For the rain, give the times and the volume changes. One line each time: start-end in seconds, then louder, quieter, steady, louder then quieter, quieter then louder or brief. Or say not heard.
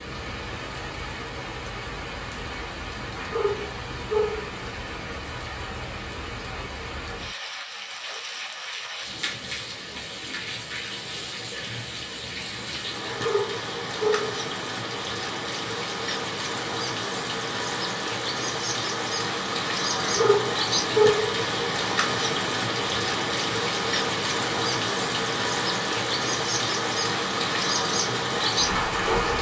0.0-29.3 louder.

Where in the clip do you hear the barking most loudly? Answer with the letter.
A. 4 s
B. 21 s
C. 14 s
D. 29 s
B.